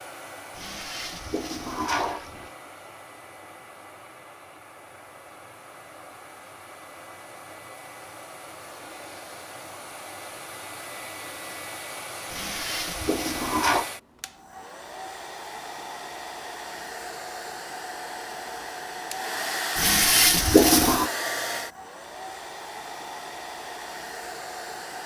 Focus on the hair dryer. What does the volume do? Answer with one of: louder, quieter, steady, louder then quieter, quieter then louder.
louder.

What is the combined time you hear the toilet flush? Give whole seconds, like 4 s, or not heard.
5 s.